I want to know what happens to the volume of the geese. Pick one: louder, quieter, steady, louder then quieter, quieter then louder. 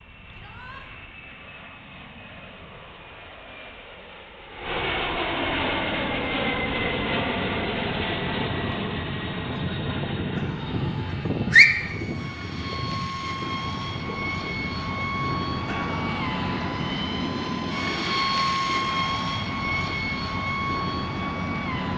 louder then quieter.